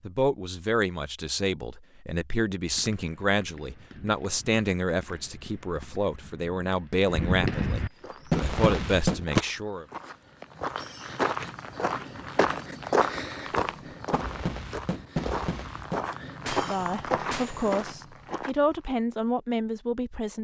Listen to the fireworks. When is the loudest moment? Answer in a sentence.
The loudest moment of the fireworks is at 9 seconds.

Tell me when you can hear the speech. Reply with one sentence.
You can hear the speech from 0.1 to 9.8 s and from 16.6 to 20.3 s.